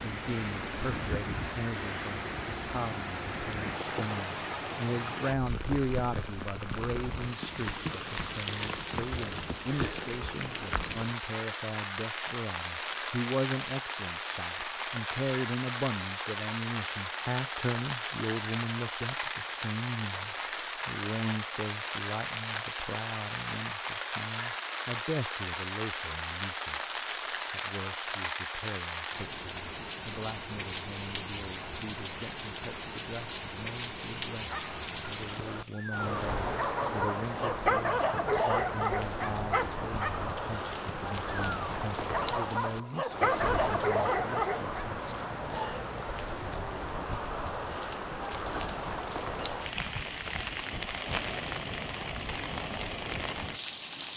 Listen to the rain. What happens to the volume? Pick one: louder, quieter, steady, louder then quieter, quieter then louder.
steady.